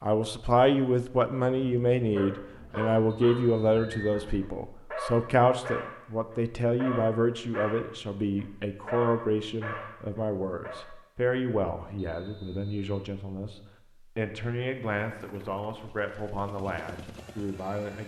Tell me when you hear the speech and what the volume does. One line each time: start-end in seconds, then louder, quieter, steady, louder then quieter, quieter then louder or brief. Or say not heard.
0.0-18.0 quieter.